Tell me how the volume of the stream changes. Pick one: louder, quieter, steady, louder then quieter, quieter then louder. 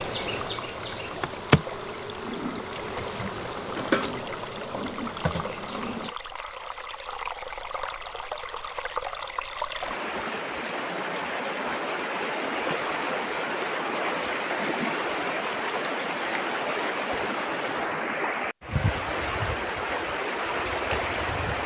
louder.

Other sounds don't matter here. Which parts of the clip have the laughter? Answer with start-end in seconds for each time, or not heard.
not heard.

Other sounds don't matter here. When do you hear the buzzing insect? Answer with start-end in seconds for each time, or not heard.
0.0-6.2.